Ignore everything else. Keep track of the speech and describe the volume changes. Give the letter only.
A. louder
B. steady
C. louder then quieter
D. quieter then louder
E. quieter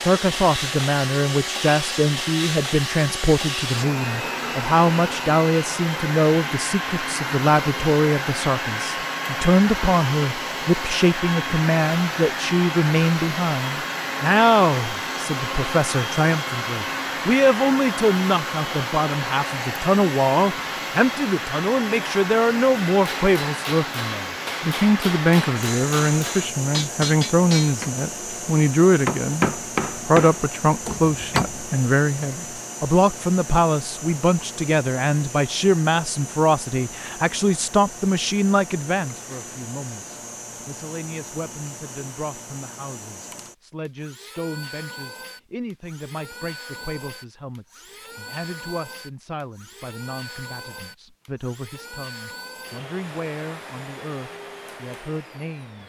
E.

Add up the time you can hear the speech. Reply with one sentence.
The speech can be heard for 55 seconds in total.